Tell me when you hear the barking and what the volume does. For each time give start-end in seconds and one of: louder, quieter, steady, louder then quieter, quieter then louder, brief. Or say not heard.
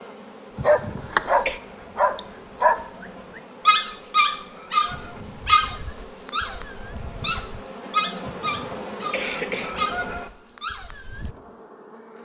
0.6-11.3 quieter.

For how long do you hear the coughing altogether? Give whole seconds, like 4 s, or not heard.
3 s.